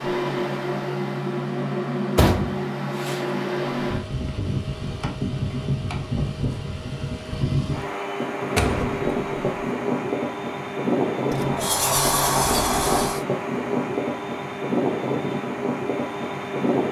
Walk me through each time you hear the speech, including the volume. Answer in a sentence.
You can't hear the speech here.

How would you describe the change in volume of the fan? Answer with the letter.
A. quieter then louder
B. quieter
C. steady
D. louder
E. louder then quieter
C.